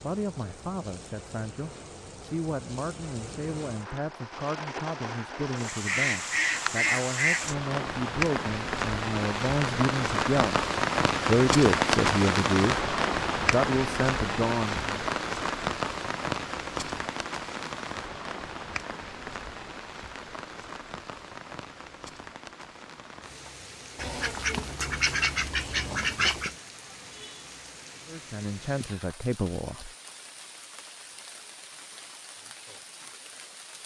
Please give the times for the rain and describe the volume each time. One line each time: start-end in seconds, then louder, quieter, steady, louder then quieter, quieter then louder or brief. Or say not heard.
0.0-33.8 louder then quieter.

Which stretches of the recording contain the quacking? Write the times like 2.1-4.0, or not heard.
5.7-7.5, 23.9-26.6.